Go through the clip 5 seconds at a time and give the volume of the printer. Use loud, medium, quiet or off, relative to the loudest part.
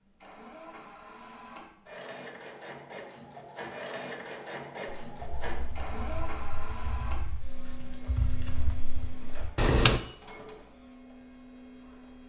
loud, loud, medium.